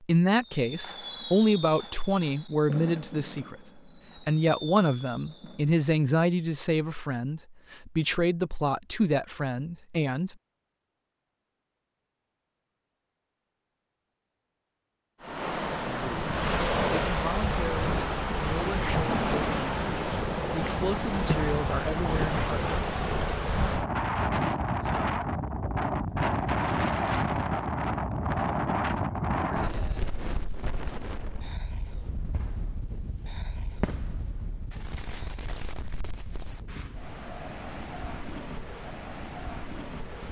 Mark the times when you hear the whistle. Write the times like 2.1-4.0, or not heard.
not heard.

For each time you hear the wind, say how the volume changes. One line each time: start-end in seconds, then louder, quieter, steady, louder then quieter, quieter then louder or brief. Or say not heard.
15.2-40.2 quieter.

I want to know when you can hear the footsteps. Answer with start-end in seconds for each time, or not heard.
not heard.